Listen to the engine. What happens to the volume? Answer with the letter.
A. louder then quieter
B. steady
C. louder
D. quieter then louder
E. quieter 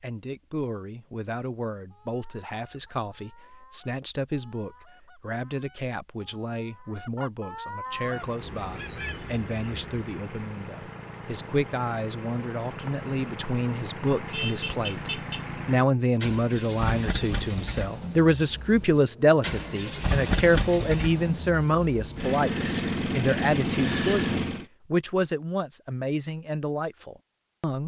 C.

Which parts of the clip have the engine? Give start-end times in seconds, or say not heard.
7.9-24.6.